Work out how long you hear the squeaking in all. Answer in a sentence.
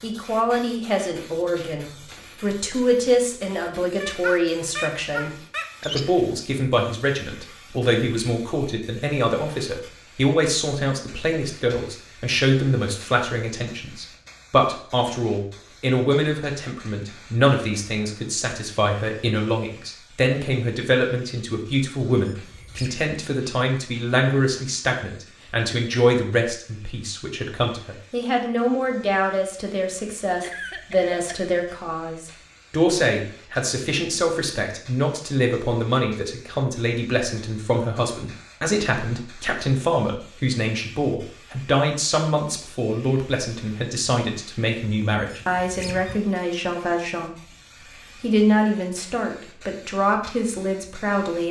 You can hear the squeaking for 4 seconds altogether.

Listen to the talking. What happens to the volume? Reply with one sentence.
The volume of the talking stays about the same.